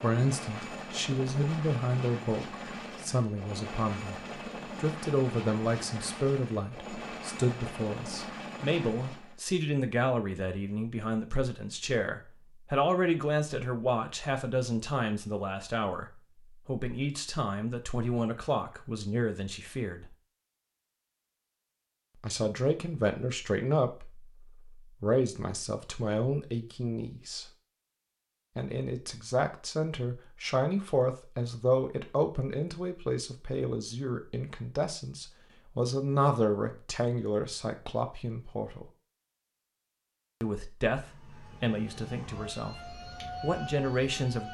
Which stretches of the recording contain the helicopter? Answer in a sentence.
The helicopter can be heard from 0.0 to 9.4 s.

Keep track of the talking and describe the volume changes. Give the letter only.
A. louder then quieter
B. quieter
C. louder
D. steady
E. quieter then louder
D.